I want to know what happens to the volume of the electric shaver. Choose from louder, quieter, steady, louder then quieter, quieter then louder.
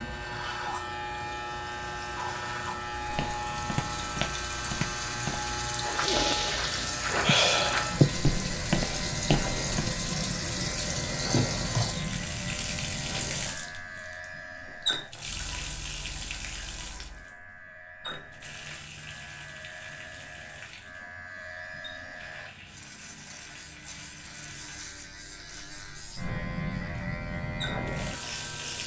quieter then louder.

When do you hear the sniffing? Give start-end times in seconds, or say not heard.
6.0-8.2.